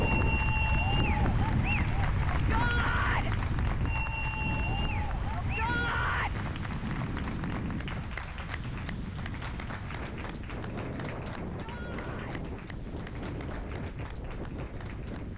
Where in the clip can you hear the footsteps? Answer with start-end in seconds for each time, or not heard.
not heard.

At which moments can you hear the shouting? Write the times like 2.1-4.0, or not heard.
2.3-3.4, 5.3-6.3, 11.6-12.4.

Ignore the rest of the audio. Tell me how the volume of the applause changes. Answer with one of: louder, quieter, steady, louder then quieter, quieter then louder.
quieter.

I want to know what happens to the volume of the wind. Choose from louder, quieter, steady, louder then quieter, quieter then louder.
quieter.